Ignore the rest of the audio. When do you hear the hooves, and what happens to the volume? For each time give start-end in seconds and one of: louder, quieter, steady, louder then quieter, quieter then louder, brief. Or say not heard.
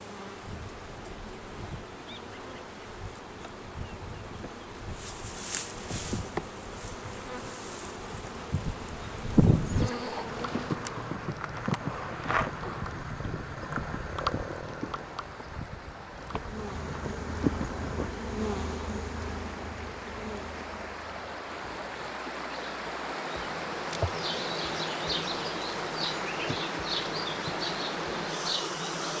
10.2-18.1 quieter then louder.